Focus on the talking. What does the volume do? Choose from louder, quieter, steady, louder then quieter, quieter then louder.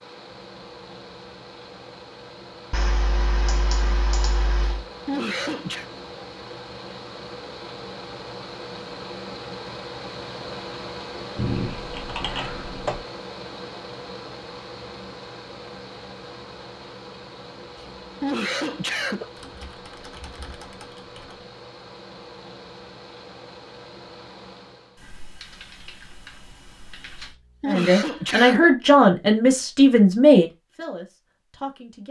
quieter.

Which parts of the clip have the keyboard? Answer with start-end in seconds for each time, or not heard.
2.7-4.8, 11.3-13.0, 19.4-21.4, 24.9-27.4.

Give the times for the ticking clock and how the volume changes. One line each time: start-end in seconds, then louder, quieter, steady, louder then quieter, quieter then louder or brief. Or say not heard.
not heard.